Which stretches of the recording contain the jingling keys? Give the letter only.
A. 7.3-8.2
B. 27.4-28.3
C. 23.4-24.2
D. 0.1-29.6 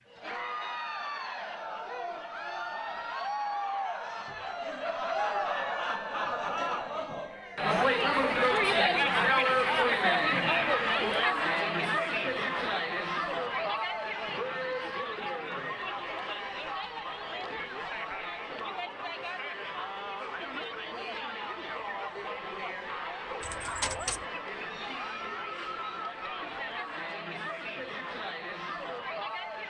C.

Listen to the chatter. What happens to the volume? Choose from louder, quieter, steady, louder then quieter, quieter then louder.
louder then quieter.